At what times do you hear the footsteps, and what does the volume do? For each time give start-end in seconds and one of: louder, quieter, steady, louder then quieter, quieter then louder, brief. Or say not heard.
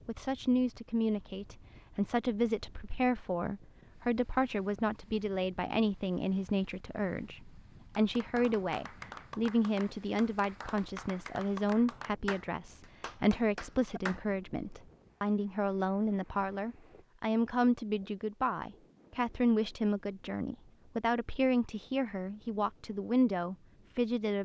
not heard.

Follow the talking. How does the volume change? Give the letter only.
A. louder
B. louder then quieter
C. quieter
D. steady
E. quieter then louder
D.